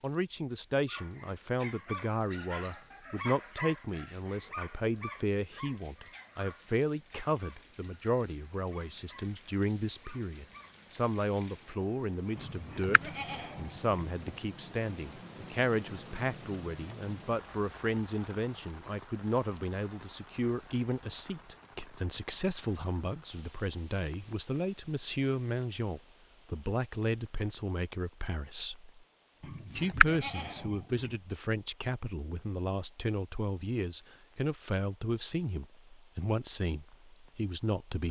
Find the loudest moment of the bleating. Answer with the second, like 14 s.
30 s.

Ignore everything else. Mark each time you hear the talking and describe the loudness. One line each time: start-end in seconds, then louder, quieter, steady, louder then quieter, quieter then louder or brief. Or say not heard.
0.0-28.9 steady
29.7-38.0 steady.